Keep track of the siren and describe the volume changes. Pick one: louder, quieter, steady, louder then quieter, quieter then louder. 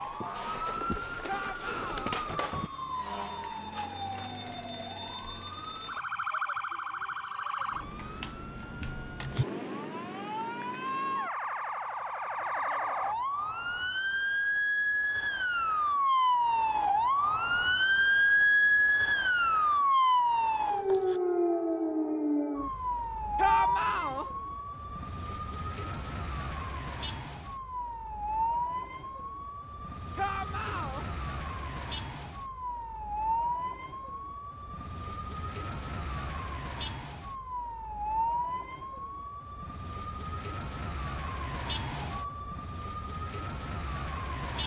louder then quieter.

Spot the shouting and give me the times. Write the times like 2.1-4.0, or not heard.
1.2-2.1, 23.4-24.2, 30.1-31.1.